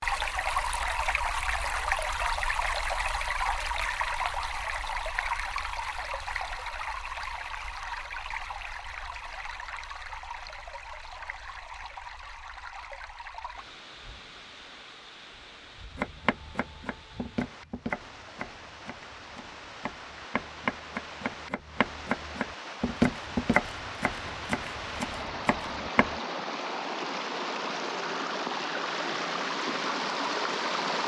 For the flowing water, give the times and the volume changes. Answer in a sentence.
You can hear the flowing water from 0.0 to 31.0 s, getting quieter then louder.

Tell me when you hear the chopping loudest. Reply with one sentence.
The loudest moment of the chopping is at 23 seconds.